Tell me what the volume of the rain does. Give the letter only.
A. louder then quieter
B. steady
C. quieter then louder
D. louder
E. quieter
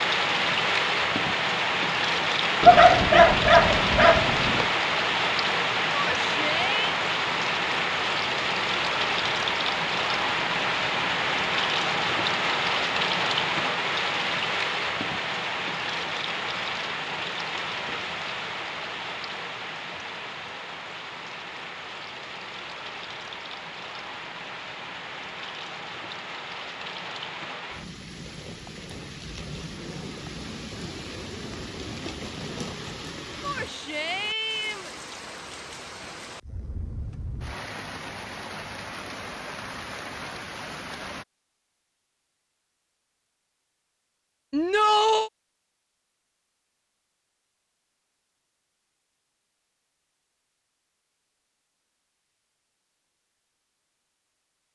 E.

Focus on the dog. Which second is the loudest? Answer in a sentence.
The volume of the dog peaks at 3 seconds.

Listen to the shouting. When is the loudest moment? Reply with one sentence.
The loudest moment of the shouting is at 45 seconds.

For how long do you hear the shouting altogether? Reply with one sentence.
The shouting can be heard for 3 seconds in total.